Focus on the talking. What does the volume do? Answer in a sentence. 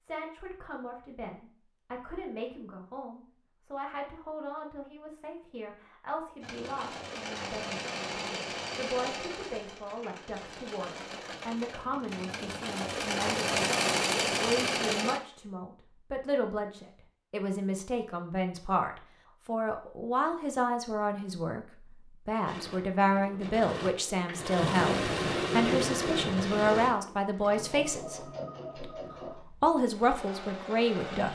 The volume of the talking goes up.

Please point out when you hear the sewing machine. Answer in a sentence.
You can hear the sewing machine from 6.4 to 15.2 s and from 22.4 to 31.2 s.